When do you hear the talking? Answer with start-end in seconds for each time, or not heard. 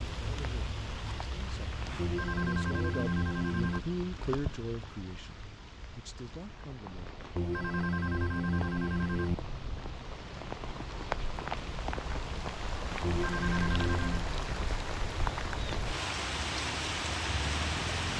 0.1-7.1.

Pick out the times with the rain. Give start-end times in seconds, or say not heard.
0.0-18.1.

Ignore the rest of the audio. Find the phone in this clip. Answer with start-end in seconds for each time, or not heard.
1.9-3.9, 7.3-9.3, 13.0-14.3.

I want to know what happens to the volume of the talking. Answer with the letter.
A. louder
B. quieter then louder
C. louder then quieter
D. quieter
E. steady
C.